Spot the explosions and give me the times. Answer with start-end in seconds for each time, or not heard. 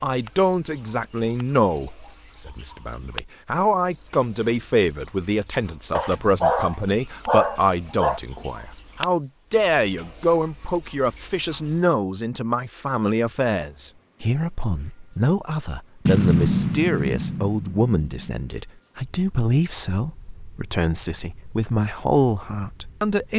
16.1-18.4.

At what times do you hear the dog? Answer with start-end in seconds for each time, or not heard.
6.0-8.2.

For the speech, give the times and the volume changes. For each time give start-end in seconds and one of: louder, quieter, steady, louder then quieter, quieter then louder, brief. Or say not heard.
0.0-23.3 steady.